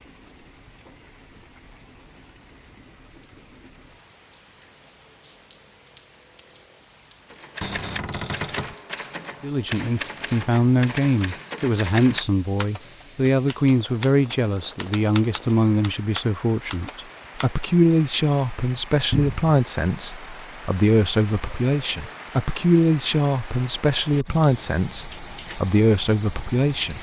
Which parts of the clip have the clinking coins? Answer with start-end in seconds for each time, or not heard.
not heard.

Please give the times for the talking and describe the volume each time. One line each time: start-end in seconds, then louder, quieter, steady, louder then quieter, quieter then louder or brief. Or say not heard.
9.4-26.9 steady.